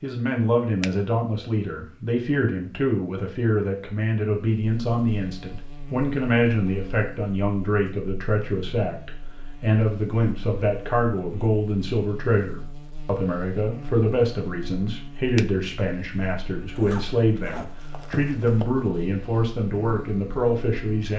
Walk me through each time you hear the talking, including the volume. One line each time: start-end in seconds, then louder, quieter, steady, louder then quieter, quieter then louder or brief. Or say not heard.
0.0-21.1 steady.